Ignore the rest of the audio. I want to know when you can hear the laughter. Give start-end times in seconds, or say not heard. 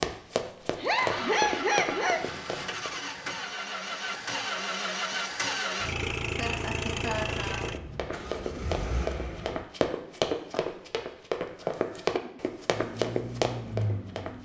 0.8-2.2, 6.2-7.7, 11.6-12.4.